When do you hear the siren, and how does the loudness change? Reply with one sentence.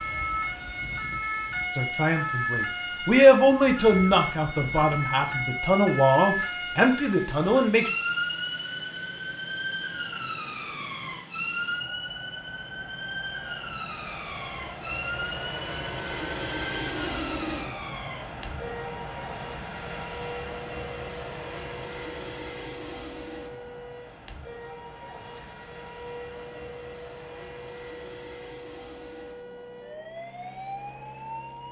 The siren can be heard from 0.0 to 31.6 s, getting quieter.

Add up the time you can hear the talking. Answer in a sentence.
The talking can be heard for 6 seconds in total.